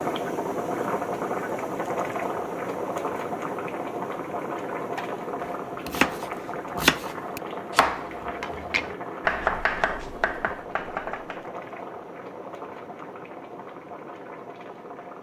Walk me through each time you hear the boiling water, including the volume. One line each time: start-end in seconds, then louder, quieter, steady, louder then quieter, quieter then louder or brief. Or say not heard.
0.0-15.1 quieter.